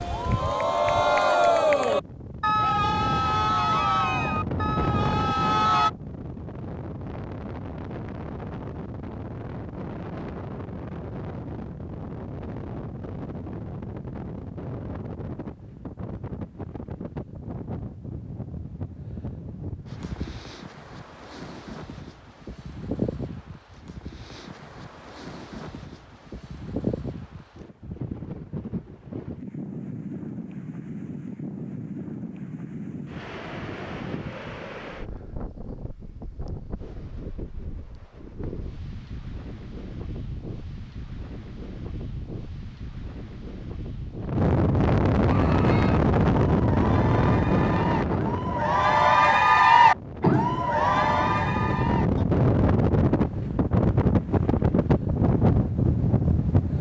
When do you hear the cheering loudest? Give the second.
50 s.